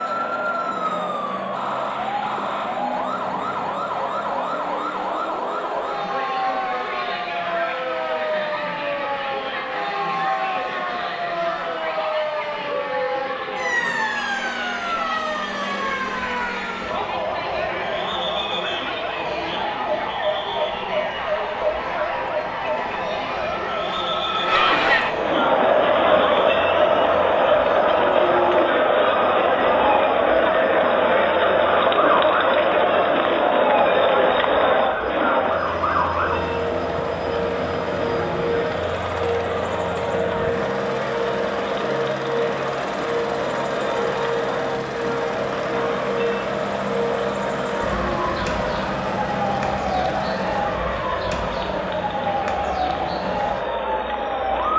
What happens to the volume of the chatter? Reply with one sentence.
The volume of the chatter goes up, then down.